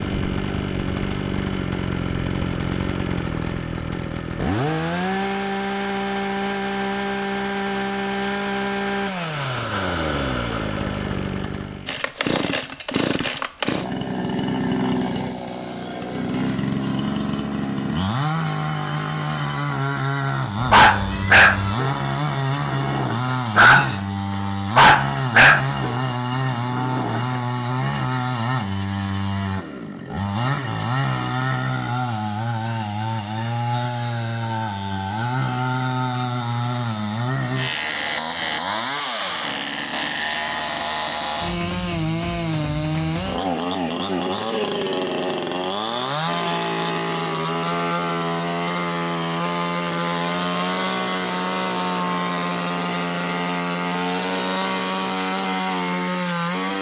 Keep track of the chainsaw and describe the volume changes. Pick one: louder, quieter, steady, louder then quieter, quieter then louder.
steady.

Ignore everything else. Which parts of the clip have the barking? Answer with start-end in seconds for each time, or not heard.
20.7-22.0, 22.6-24.0, 24.8-26.0, 26.7-27.4.